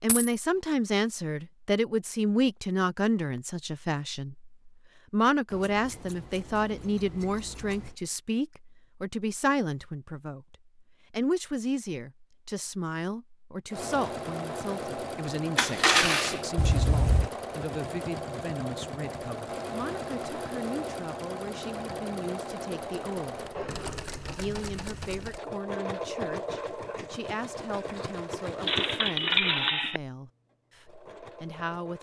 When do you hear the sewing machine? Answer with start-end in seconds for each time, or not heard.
13.7-31.9.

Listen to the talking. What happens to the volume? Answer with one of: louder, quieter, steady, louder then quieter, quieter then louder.
quieter.